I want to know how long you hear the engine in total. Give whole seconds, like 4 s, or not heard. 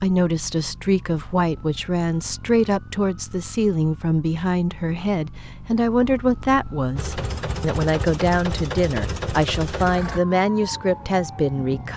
3 s.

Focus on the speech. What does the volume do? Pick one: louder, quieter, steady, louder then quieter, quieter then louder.
steady.